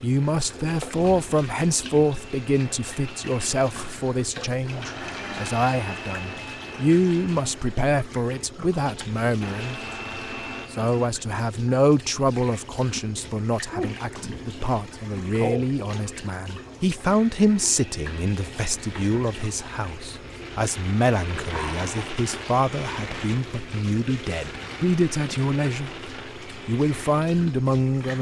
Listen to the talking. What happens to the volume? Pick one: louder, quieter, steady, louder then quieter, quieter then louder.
steady.